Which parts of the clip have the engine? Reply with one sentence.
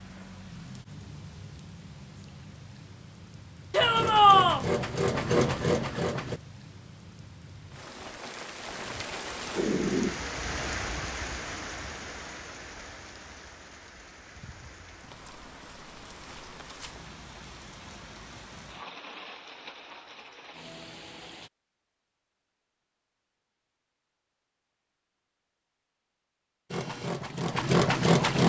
The engine can be heard from 3.8 to 6.4 s and from 26.7 to 28.4 s.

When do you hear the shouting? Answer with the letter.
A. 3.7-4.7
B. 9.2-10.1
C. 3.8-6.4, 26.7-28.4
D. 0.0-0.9
A.